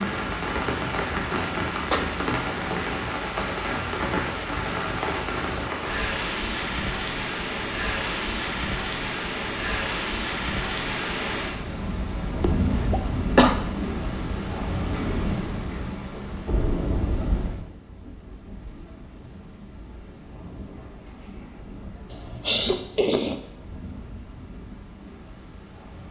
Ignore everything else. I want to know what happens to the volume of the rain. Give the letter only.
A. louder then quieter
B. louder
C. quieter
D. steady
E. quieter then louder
C.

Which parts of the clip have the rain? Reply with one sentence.
You can hear the rain from 0.0 to 26.0 s.